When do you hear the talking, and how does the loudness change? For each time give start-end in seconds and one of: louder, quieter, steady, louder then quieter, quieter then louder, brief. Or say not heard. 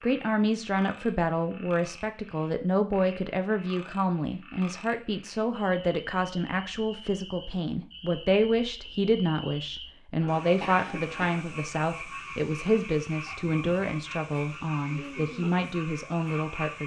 0.0-16.8 steady.